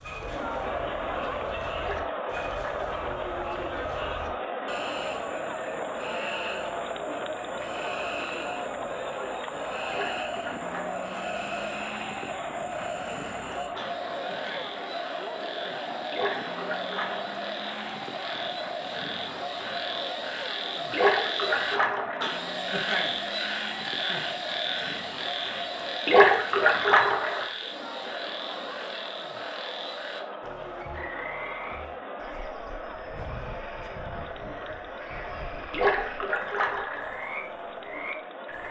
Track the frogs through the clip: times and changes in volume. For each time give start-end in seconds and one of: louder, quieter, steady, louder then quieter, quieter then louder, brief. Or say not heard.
0.0-38.6 louder then quieter.